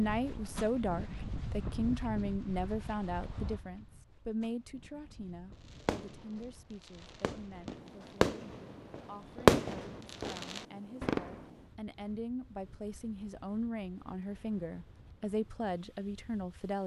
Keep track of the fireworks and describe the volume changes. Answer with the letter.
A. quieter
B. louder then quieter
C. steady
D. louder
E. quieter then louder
B.